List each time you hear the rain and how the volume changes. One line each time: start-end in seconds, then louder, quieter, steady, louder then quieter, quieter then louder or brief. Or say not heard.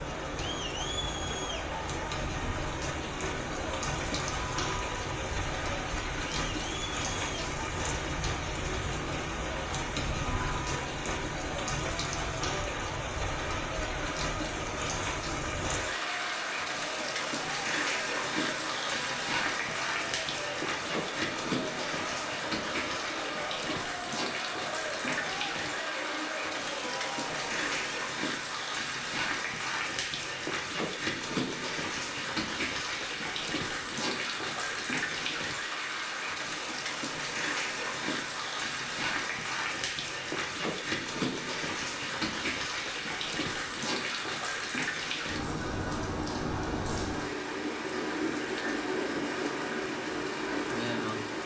0.0-51.4 steady.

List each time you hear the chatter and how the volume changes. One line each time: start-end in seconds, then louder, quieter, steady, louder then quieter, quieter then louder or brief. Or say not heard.
0.0-28.0 steady.